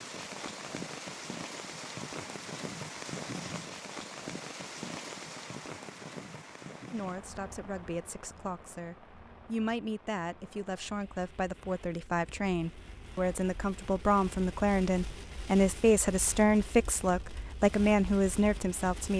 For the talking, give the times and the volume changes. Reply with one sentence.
The talking can be heard from 6.9 to 19.1 s, getting louder.